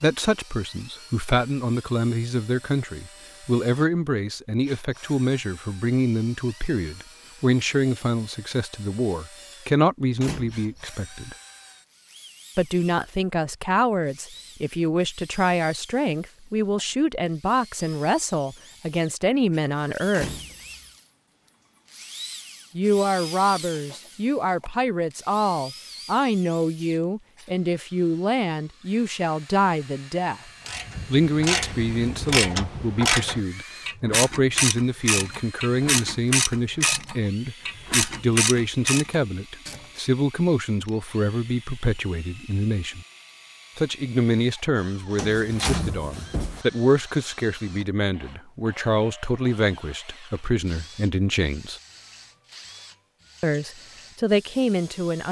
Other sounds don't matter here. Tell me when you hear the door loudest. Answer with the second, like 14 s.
46 s.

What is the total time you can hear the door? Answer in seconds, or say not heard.
2 s.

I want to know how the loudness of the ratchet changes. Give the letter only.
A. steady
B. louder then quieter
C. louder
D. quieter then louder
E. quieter
A.